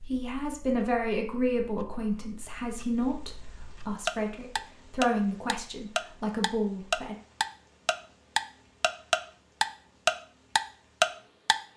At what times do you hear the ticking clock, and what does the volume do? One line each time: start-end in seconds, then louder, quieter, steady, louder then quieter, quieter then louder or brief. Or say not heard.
0.0-11.6 louder.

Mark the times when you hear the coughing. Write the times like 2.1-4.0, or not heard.
not heard.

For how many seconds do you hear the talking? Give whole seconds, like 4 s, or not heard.
7 s.